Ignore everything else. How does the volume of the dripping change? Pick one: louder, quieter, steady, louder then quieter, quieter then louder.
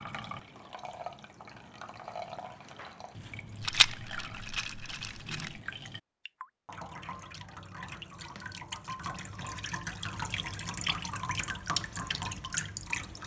louder.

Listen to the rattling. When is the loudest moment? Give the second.
4 s.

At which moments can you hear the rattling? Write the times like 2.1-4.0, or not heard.
3.6-5.6.